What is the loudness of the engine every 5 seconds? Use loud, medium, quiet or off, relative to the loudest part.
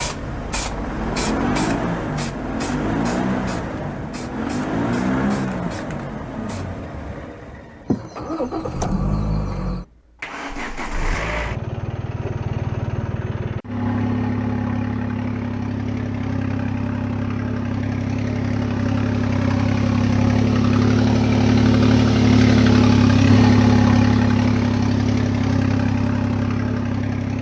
medium, medium, medium, medium, loud, medium.